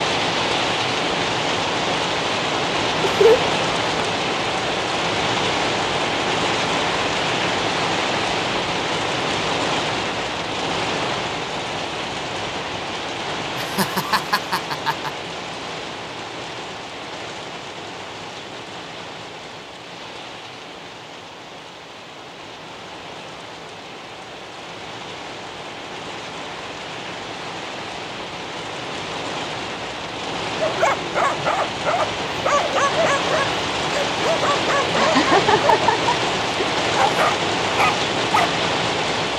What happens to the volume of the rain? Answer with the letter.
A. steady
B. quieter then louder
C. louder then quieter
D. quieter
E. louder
B.